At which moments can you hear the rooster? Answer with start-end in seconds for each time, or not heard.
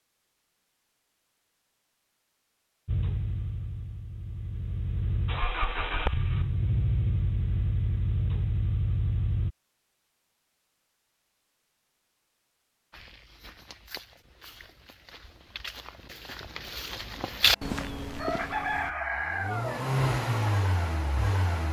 18.1-19.9.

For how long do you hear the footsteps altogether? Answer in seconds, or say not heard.
6 s.